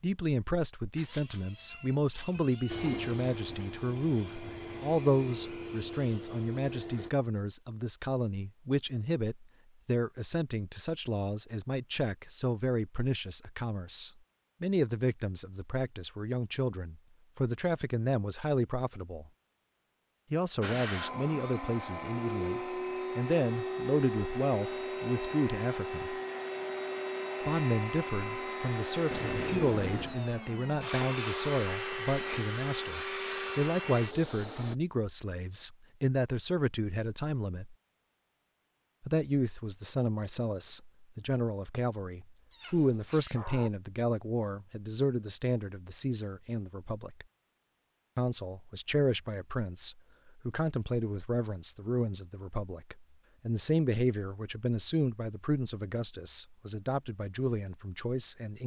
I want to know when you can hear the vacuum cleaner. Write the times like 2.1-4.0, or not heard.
2.6-7.1, 20.6-34.8.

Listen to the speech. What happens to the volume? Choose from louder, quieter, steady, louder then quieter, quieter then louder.
steady.